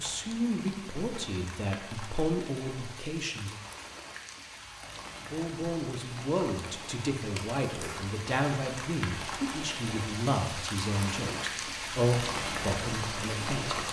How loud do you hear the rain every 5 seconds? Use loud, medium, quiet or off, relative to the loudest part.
medium, medium, loud.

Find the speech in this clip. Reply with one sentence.
The speech can be heard from 0.0 to 3.6 s and from 5.3 to 13.8 s.